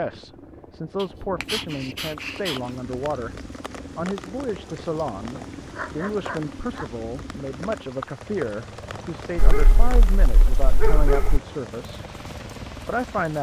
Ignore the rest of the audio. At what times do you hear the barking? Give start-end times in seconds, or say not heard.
1.0-2.6, 5.3-6.9, 9.3-11.4.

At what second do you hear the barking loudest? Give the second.
11 s.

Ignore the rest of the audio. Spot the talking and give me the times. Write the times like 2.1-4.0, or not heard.
0.0-3.4, 4.0-12.0, 12.8-13.3.